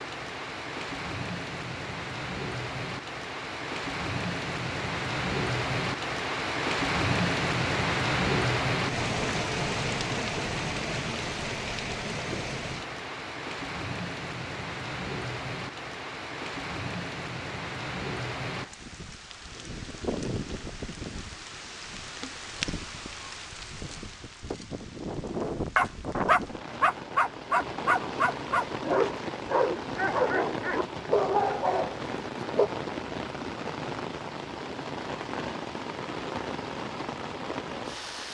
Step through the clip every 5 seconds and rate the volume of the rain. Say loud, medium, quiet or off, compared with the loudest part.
medium, loud, medium, medium, medium, medium, medium, medium.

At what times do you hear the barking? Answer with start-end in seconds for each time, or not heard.
25.6-32.7.